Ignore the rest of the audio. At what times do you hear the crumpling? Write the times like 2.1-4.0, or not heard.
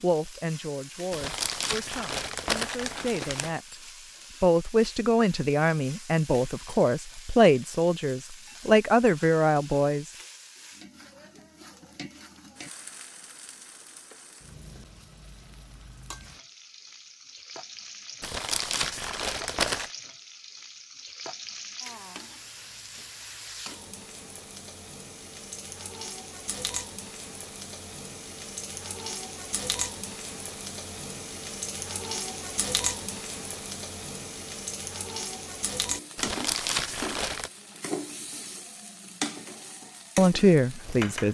1.1-3.6, 18.2-19.9, 36.1-37.5.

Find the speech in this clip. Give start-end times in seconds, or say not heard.
0.0-3.8, 4.4-10.1, 40.1-41.3.